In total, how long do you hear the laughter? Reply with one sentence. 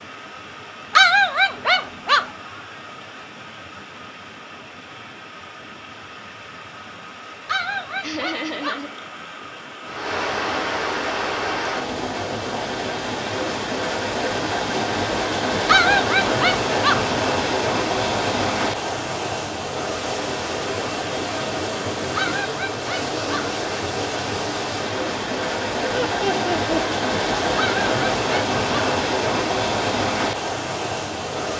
The laughter can be heard for 2 seconds in total.